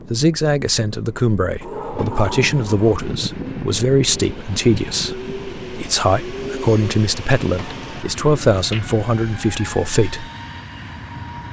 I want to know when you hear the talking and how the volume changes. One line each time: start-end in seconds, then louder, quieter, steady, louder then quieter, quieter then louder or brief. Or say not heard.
0.1-10.3 steady.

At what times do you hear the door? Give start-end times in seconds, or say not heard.
1.6-3.0, 7.5-8.2.